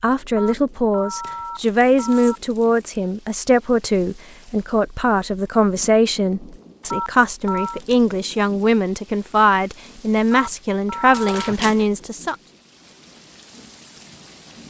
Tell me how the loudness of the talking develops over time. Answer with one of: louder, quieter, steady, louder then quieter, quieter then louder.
steady.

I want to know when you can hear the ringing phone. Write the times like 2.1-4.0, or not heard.
0.3-2.4, 6.9-7.8, 10.3-11.6.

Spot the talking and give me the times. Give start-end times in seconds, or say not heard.
0.0-12.3.